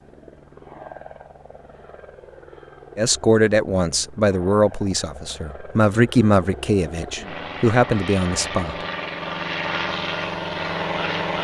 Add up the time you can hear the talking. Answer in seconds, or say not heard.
6 s.